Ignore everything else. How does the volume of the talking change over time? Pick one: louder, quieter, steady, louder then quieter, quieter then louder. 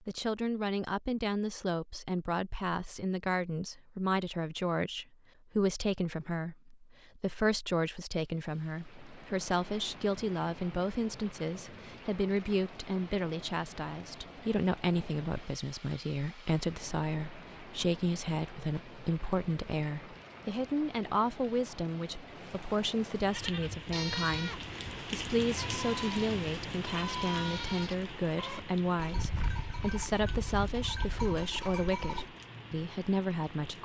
steady.